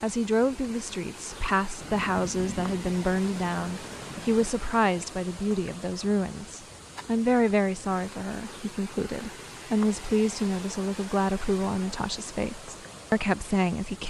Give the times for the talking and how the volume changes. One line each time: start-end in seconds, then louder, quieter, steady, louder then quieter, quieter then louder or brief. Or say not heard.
0.0-14.0 steady.